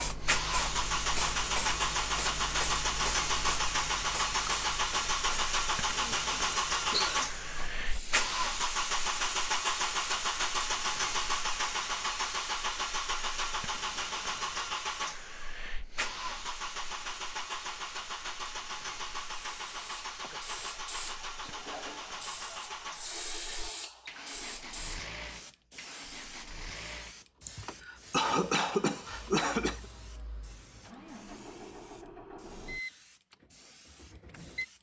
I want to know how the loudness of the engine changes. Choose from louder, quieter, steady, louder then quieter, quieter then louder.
quieter.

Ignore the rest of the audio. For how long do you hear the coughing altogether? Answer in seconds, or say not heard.
5 s.